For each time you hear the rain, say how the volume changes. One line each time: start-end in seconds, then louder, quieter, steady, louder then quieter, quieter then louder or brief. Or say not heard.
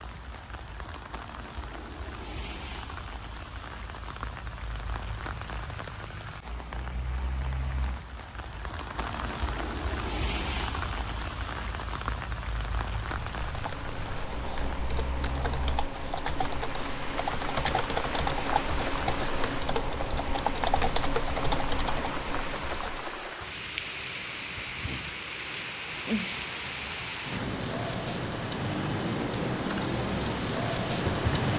0.0-31.5 louder.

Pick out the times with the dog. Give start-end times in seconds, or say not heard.
not heard.